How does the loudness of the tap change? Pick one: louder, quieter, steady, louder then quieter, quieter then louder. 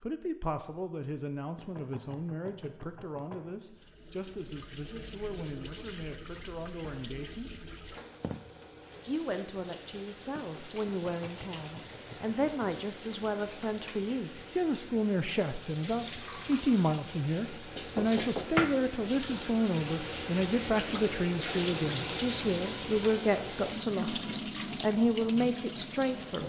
louder.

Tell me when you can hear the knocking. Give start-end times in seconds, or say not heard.
1.6-3.5, 10.8-12.8, 17.8-18.6.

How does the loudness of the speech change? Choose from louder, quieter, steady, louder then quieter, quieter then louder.
louder.